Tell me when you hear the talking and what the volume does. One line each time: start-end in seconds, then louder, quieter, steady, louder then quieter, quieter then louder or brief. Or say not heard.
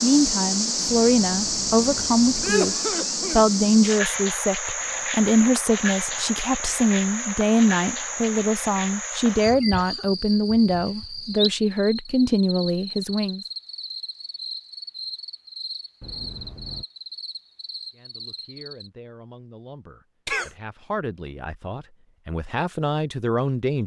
0.0-13.4 steady
17.9-23.8 louder.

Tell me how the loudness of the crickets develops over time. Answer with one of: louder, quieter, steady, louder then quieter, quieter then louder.
quieter.